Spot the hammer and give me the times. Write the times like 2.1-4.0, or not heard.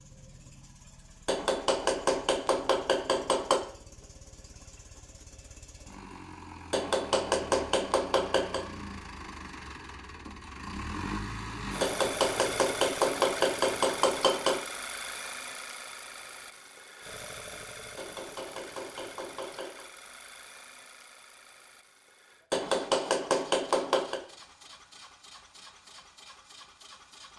1.2-3.6, 6.7-8.7, 11.8-14.7, 17.9-19.9, 22.5-24.2.